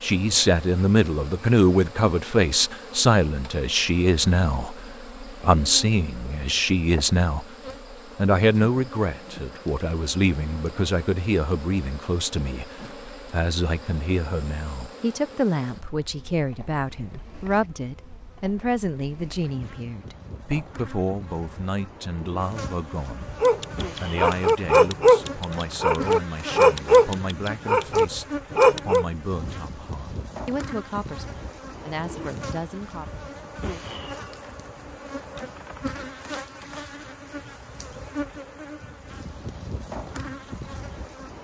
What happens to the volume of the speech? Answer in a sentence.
The volume of the speech goes down.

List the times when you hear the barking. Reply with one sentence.
The barking can be heard from 23.4 to 29.1 s.